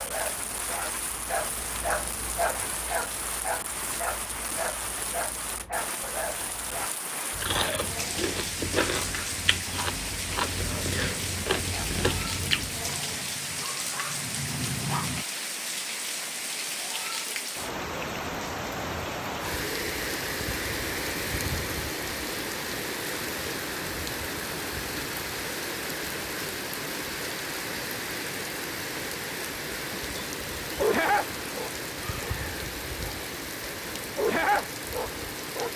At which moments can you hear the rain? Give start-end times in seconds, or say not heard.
0.0-35.7.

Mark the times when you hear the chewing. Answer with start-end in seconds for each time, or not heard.
7.3-13.0.